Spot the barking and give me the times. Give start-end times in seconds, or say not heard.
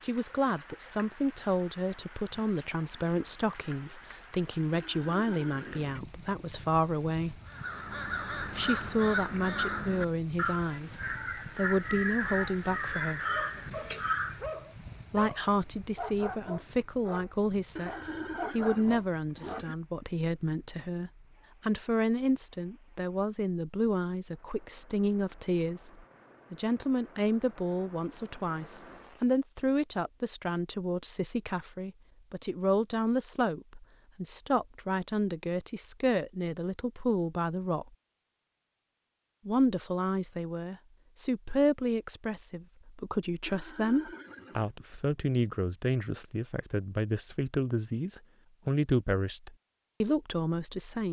13.3-19.6.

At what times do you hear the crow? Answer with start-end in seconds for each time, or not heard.
7.5-14.5.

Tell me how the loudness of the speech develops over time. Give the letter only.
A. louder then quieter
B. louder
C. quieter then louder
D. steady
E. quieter
D.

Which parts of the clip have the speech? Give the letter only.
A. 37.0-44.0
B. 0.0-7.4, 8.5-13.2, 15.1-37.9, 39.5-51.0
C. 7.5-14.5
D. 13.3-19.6
B.